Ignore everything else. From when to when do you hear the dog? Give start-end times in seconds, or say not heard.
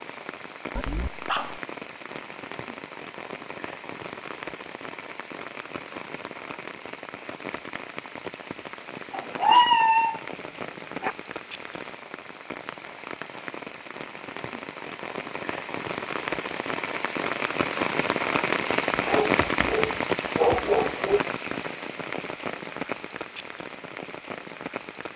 0.8-1.6, 9.1-11.2, 18.9-21.2.